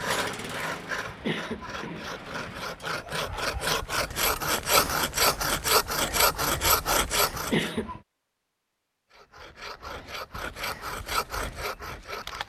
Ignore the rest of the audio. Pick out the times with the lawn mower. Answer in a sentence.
The lawn mower can be heard from 0.0 to 2.9 s.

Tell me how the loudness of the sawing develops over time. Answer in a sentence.
The loudness of the sawing goes up, then down.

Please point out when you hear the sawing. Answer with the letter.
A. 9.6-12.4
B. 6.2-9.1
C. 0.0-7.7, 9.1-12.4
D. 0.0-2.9
C.